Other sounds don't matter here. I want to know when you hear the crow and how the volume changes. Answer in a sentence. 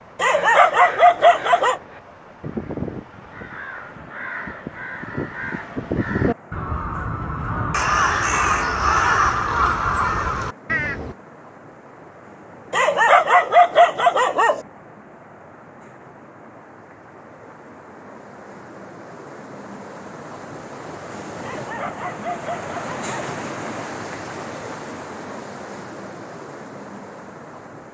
The crow can be heard from 0.3 to 11.2 s, getting louder.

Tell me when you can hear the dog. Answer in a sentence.
You can hear the dog from 0.2 to 1.8 s, from 12.7 to 14.6 s and from 21.4 to 23.1 s.